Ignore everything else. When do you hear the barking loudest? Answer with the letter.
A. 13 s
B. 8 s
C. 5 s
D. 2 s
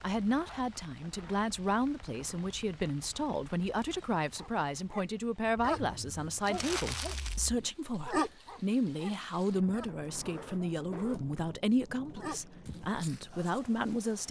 B.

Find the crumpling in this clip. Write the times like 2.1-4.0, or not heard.
6.4-7.4.